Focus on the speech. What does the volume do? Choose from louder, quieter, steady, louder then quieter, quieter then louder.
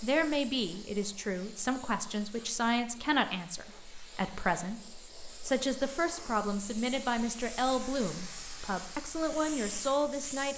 steady.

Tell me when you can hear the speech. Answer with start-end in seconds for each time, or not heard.
0.0-10.5.